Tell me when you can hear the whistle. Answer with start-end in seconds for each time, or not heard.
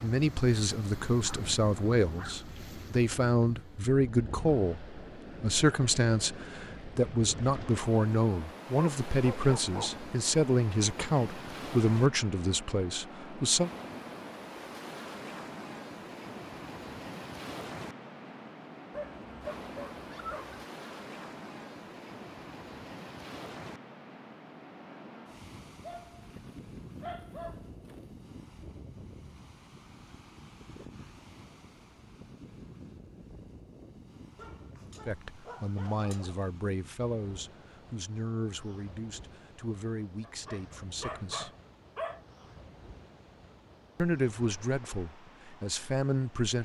not heard.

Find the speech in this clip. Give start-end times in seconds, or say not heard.
0.0-13.7, 35.0-41.5, 44.0-46.6.